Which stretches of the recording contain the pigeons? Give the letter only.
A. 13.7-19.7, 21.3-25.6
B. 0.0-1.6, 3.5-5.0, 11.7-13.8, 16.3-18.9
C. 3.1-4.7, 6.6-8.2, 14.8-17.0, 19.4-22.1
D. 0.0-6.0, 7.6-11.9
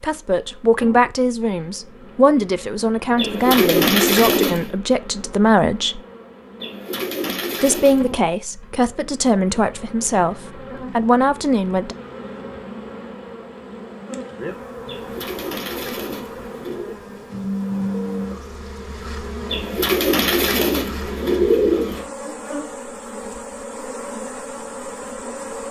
C.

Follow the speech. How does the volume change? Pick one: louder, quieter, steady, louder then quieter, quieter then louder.
steady.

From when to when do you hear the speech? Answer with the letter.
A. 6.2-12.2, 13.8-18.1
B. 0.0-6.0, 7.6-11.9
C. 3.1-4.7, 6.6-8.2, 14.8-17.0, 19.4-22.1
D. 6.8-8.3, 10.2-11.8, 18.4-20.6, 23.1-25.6
B.